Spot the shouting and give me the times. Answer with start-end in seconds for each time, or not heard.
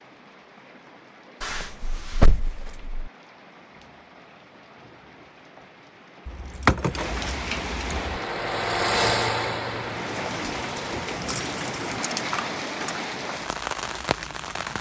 not heard.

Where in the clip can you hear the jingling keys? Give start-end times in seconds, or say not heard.
1.4-3.1, 6.2-8.2, 11.2-13.1.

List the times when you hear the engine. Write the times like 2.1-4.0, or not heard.
7.8-11.2.